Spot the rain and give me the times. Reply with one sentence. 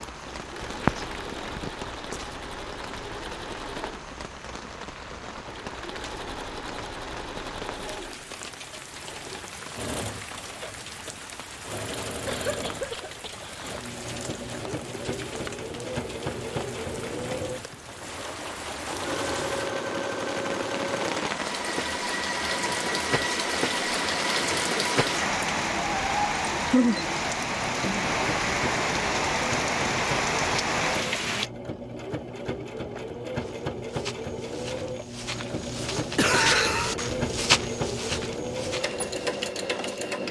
The rain can be heard from 0.0 to 31.5 s.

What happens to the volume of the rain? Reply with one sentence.
The volume of the rain goes up.